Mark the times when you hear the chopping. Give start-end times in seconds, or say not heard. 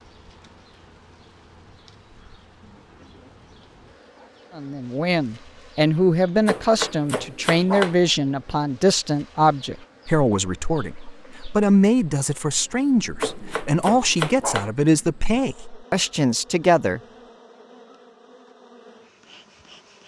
6.5-8.0, 13.2-14.7.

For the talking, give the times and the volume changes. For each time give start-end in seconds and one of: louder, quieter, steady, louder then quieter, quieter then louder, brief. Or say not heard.
4.5-17.0 steady.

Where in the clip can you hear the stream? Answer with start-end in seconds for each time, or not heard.
not heard.